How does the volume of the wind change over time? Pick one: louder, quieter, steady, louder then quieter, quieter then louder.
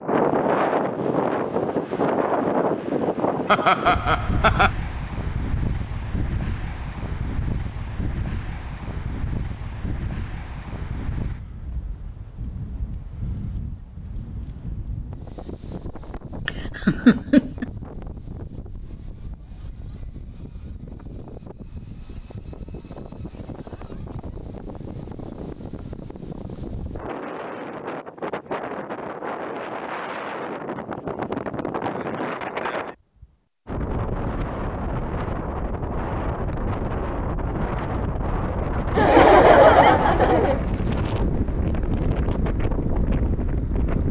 quieter then louder.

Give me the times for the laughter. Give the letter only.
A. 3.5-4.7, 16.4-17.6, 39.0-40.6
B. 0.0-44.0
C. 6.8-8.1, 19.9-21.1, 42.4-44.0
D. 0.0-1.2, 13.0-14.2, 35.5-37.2
A.